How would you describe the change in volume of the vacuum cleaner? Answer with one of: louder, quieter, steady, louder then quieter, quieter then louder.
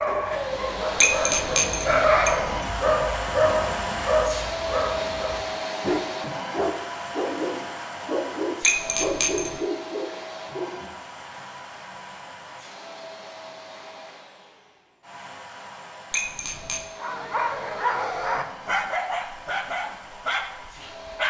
quieter.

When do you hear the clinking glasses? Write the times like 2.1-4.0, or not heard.
1.0-2.4, 8.6-9.6, 16.1-16.9.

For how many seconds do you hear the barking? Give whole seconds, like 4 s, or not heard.
15 s.